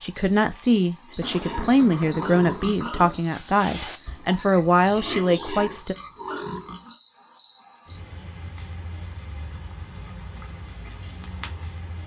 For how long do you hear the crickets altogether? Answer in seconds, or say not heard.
12 s.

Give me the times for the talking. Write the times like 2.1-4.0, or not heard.
0.0-6.0.